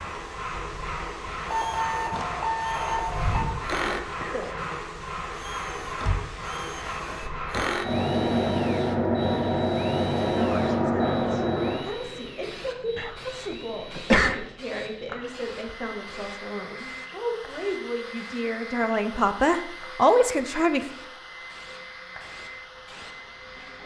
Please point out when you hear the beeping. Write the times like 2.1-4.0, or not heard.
1.4-3.5.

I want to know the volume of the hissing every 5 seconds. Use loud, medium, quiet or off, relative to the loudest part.
medium, loud, loud, quiet, quiet.